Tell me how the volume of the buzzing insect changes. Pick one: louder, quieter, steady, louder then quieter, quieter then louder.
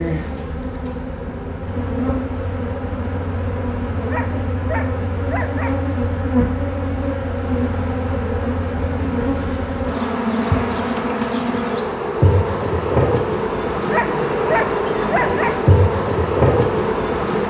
louder.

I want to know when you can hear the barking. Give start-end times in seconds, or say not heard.
4.1-5.8, 13.9-15.6.